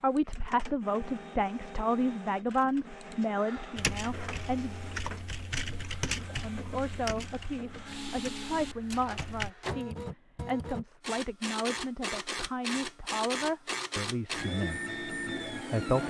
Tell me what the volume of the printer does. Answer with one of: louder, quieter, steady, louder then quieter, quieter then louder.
louder.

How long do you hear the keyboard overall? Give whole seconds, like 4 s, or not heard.
6 s.